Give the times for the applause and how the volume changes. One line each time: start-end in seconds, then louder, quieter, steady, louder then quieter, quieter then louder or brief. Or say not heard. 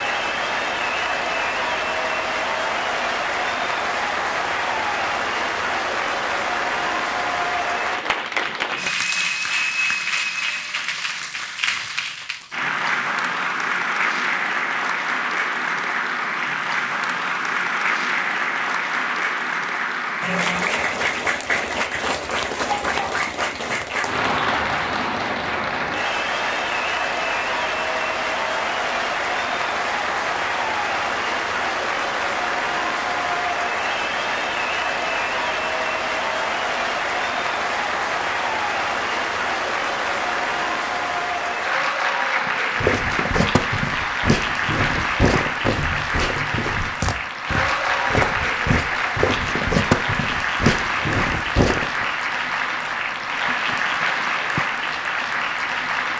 0.0-56.1 steady.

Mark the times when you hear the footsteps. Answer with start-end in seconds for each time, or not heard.
42.8-52.0.